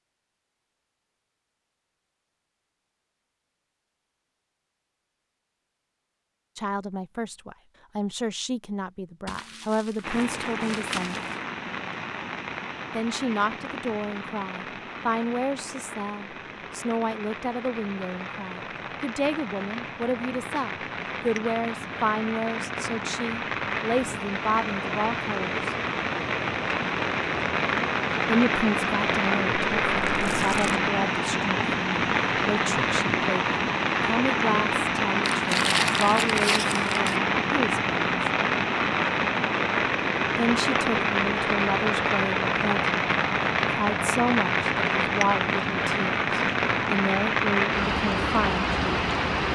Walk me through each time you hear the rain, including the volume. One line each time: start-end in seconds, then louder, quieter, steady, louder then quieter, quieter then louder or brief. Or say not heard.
10.0-49.5 louder.